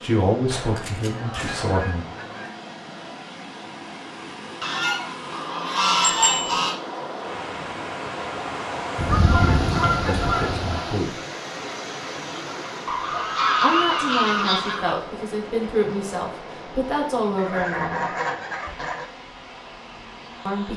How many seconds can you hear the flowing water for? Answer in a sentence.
The flowing water can be heard for 21 seconds in total.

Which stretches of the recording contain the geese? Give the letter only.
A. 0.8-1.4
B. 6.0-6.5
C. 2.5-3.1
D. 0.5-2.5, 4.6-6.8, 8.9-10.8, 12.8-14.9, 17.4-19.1
D.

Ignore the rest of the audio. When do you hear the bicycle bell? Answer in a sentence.
You can hear the bicycle bell from 6.0 to 6.5 s.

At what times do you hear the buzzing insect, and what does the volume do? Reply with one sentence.
The buzzing insect can't be heard in this clip.